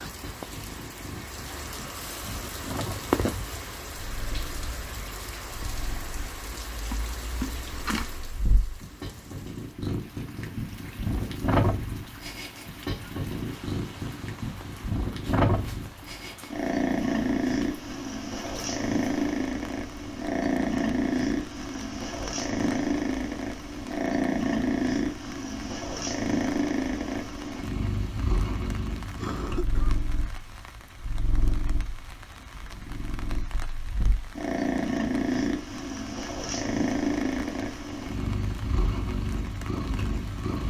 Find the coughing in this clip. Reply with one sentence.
The coughing can be heard from 29.1 to 30.0 s.